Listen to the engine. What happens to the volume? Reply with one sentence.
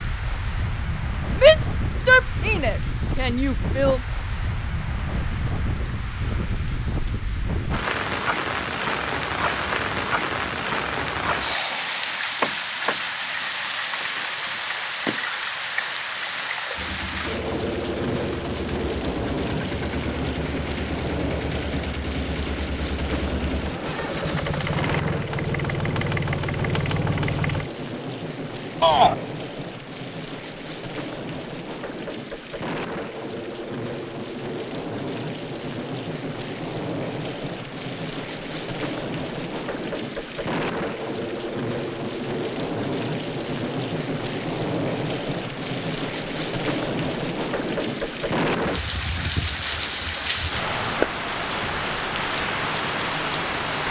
The volume of the engine goes up.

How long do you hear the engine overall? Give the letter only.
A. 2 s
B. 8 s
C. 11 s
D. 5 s
C.